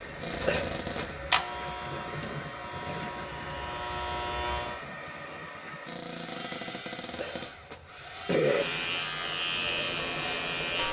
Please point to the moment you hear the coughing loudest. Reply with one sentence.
The loudest moment of the coughing is at 8 seconds.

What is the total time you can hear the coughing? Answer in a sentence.
You can hear the coughing for 2 seconds altogether.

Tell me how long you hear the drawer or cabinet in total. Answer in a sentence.
You can hear the drawer or cabinet for 3 seconds altogether.